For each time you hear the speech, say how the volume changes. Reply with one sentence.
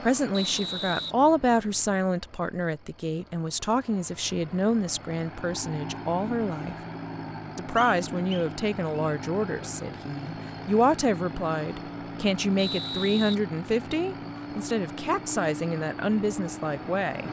You can hear the speech from 0.0 to 6.8 s, getting quieter; and from 7.5 to 17.2 s, at a steady volume.